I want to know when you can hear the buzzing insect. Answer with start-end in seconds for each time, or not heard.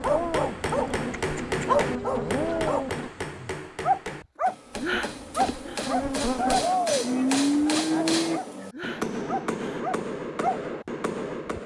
0.0-3.1, 4.7-6.7.